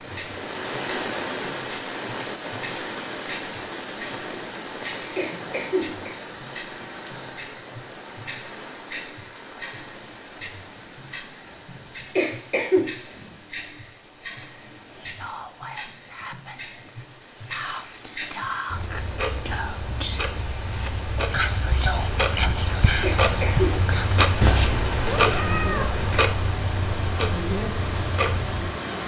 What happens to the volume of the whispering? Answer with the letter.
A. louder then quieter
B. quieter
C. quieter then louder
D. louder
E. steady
D.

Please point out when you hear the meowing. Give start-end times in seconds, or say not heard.
24.4-26.2.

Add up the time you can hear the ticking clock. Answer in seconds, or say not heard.
29 s.